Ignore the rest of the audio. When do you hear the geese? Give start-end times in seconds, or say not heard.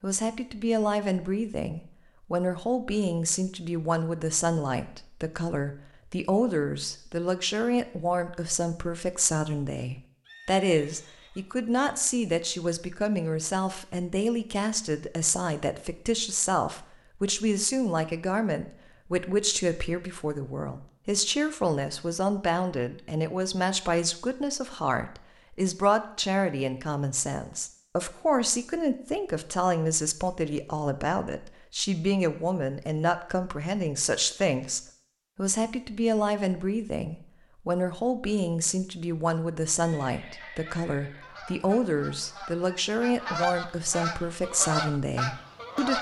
40.4-45.9.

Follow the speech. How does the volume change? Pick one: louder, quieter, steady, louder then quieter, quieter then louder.
steady.